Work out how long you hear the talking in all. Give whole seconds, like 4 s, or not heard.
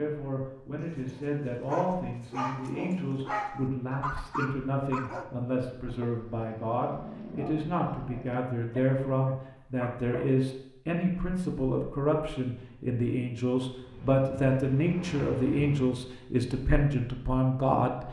18 s.